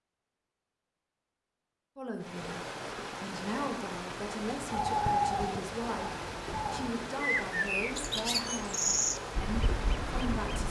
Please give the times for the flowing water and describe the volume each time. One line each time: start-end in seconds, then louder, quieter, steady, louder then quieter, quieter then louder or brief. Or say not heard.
2.1-10.6 steady.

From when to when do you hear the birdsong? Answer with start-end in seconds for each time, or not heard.
4.7-10.6.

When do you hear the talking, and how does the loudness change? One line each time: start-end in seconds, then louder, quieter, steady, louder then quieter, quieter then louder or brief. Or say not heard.
1.9-2.6 brief
3.2-10.6 steady.